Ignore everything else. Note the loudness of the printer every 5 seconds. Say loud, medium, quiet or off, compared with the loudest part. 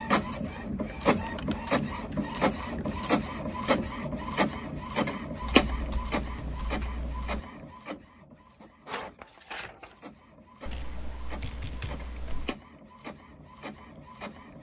loud, loud, quiet.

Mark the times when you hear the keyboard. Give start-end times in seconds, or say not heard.
0.6-3.0, 5.7-7.5, 10.7-12.6.